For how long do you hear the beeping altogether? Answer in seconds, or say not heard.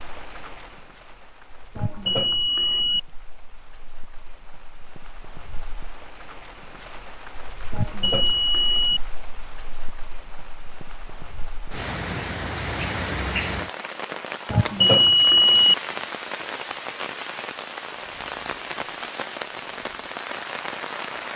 4 s.